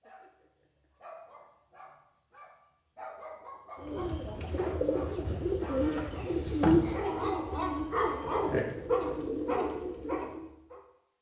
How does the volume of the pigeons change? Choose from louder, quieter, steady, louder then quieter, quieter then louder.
louder then quieter.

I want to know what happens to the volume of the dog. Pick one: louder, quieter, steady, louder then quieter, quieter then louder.
louder.